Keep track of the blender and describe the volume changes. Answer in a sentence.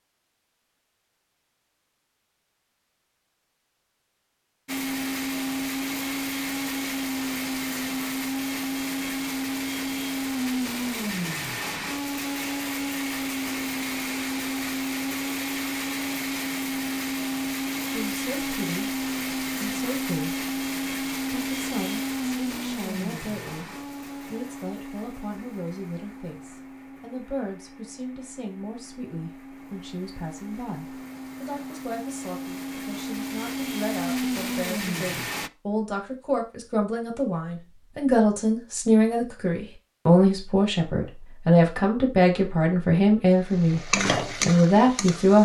The volume of the blender goes down, then up.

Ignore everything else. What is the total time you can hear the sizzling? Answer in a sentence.
The sizzling can be heard for 2 seconds in total.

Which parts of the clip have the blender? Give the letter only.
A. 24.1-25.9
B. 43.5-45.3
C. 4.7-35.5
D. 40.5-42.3
C.